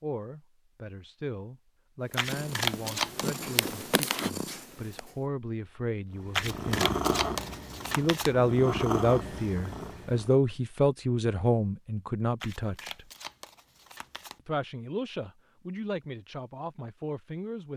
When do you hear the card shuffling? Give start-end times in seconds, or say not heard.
2.1-3.8, 6.3-8.3, 12.4-14.4.